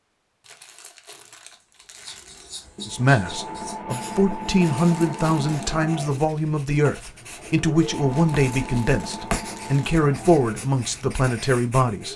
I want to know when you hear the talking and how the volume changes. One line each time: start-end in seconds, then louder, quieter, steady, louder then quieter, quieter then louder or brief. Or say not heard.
2.9-12.1 steady.